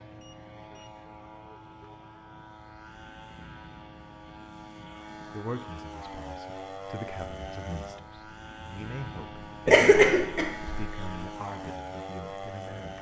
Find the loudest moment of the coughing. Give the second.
10 s.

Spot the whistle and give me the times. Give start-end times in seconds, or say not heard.
not heard.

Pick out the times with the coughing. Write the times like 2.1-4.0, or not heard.
9.7-11.2.